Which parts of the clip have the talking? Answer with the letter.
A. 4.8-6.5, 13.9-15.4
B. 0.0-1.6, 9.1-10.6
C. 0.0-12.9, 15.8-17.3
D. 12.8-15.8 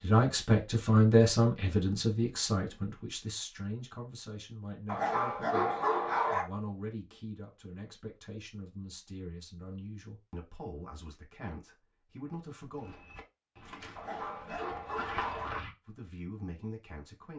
C.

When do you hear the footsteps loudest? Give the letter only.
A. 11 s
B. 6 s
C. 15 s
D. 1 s
C.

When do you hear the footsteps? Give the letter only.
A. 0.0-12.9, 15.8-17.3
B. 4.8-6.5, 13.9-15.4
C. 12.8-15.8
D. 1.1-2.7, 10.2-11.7
C.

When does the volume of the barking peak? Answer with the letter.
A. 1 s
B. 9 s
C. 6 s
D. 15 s
C.